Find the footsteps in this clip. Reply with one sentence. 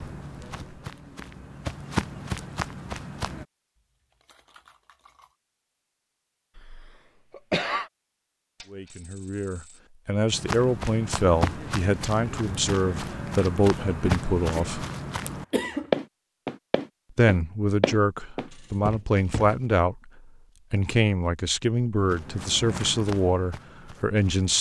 You can hear the footsteps from 0.0 to 3.5 s, from 10.3 to 19.6 s and from 21.9 to 24.5 s.